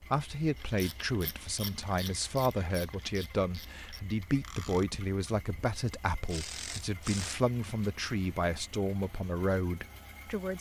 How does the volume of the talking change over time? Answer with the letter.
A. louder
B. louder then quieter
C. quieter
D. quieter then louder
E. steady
E.